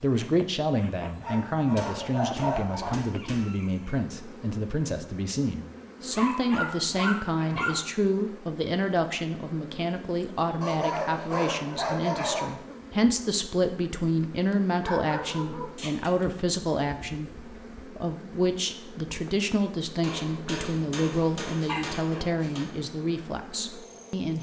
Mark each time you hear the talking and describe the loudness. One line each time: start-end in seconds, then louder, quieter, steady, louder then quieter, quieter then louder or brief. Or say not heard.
0.0-24.3 steady.